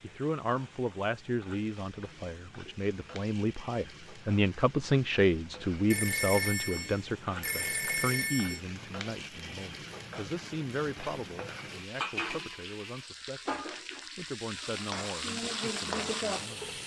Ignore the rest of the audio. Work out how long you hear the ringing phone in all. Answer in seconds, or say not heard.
3 s.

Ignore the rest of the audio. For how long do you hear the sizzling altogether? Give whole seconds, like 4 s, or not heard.
17 s.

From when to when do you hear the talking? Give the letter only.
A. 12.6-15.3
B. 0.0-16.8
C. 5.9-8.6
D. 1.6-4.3
B.